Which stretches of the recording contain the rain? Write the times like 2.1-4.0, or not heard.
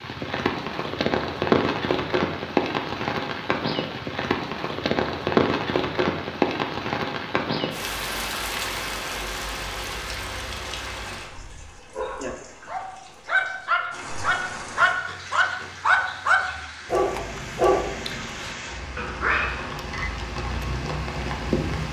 0.0-21.8.